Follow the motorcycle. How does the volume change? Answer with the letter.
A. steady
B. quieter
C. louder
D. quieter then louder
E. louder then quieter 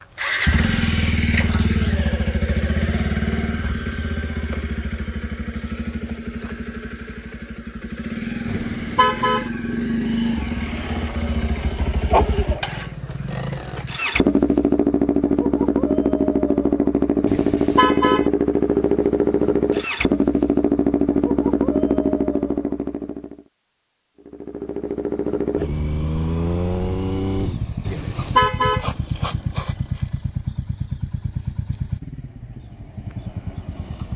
E.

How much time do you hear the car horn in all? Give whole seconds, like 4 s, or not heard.
3 s.